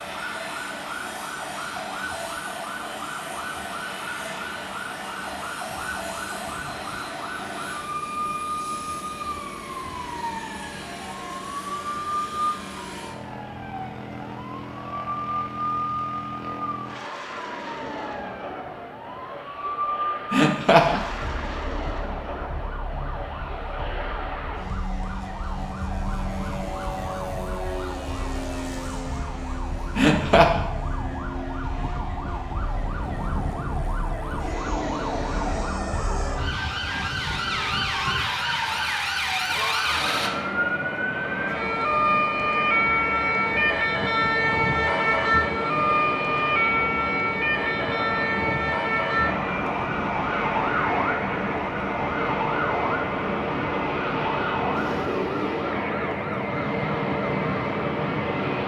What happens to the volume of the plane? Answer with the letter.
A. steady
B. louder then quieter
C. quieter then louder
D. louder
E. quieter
D.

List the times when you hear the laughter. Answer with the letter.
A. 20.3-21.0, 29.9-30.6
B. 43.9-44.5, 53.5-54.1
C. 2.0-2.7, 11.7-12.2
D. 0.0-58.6
A.